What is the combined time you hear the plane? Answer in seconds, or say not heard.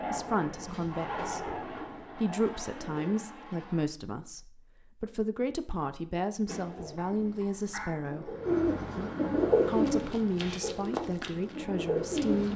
4 s.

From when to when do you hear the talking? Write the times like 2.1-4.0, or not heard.
0.1-8.3, 9.7-12.5.